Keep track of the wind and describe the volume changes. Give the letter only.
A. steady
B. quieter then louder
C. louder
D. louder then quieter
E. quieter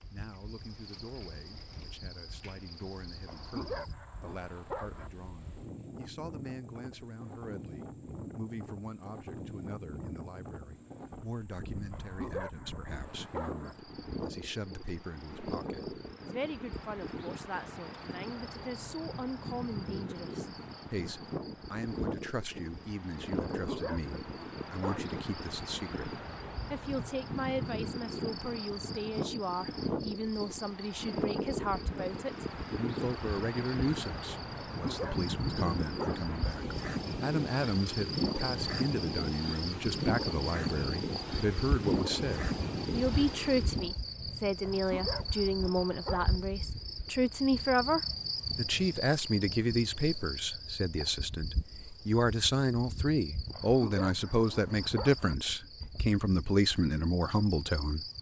C.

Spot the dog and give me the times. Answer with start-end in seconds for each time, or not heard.
3.2-5.1, 11.9-13.8, 23.4-25.2, 34.8-36.3, 44.6-46.4, 53.5-55.4.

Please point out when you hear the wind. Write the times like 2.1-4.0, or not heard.
0.0-44.0.